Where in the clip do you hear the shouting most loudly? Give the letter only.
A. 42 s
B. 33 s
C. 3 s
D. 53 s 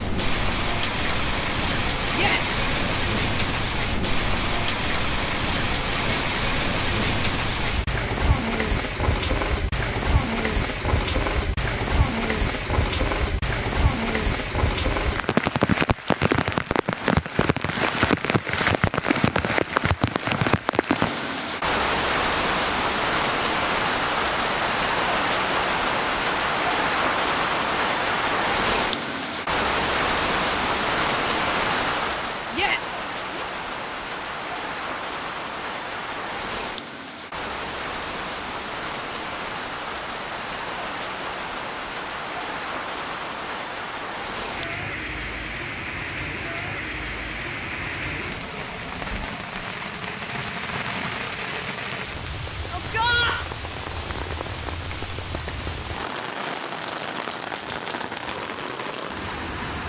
D.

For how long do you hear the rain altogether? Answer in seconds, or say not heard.
60 s.